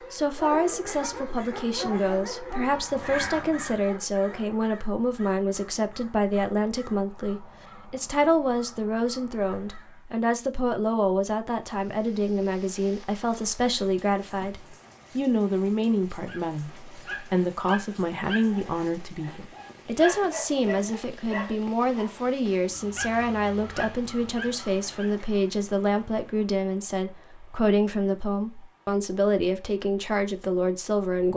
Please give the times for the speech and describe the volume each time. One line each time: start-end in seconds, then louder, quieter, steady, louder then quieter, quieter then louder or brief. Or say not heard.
0.1-31.3 steady.